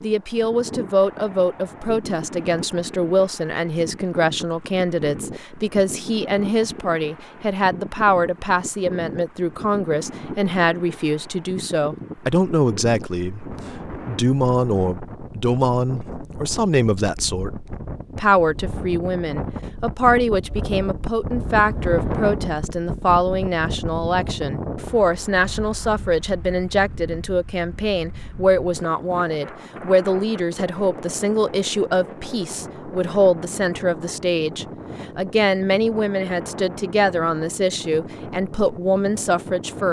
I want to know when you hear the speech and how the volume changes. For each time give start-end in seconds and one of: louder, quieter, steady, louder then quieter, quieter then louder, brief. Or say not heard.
0.0-39.8 steady.